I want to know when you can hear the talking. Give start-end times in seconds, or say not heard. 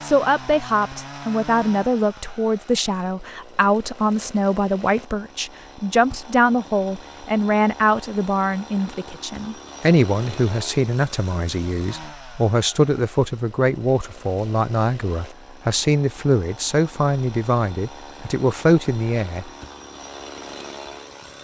0.0-19.5.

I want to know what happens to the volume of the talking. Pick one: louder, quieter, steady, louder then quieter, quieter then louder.
steady.